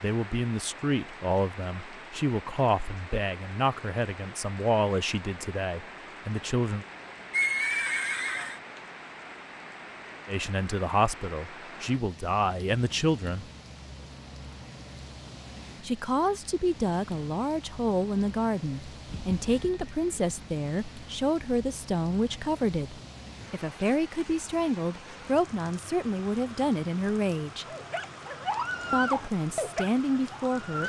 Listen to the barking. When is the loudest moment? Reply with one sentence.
The loudest moment of the barking is at 29 seconds.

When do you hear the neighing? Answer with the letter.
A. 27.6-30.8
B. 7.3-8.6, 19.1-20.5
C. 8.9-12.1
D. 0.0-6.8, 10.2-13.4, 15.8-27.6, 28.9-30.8
B.